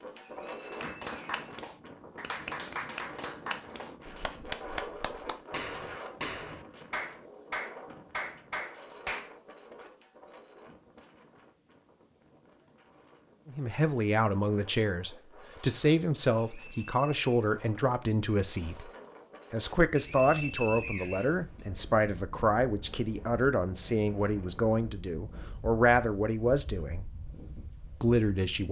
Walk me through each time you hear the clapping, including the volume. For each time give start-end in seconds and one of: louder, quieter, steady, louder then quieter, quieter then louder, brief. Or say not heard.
0.6-9.3 steady.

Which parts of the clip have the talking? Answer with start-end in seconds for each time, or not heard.
13.4-18.9, 19.5-27.1, 28.0-28.6.